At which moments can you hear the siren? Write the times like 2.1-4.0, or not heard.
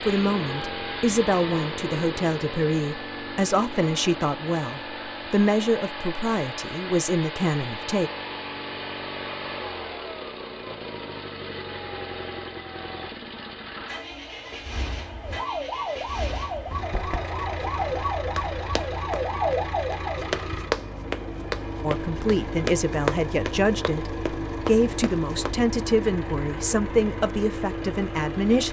15.2-20.4.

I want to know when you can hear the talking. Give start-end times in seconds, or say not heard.
0.1-8.1, 21.8-28.6.